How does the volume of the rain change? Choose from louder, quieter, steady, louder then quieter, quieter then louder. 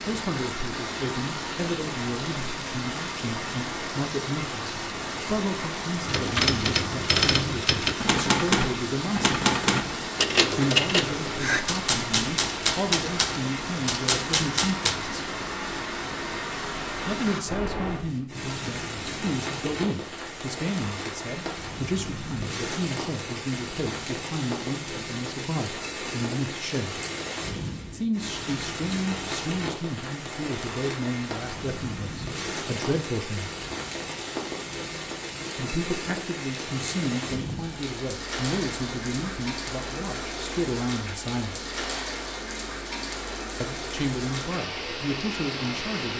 steady.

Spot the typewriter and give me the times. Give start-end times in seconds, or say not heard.
6.0-15.0.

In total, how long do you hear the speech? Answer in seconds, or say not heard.
38 s.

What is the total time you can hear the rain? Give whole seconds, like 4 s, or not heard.
46 s.